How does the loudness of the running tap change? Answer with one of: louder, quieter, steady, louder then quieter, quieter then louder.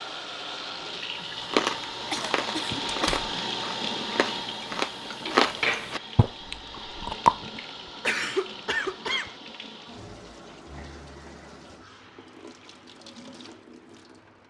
quieter.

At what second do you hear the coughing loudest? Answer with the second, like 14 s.
8 s.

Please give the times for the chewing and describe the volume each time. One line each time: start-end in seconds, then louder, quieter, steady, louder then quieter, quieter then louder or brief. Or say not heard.
1.4-7.3 louder then quieter.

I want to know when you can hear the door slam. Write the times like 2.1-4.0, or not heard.
2.9-3.3.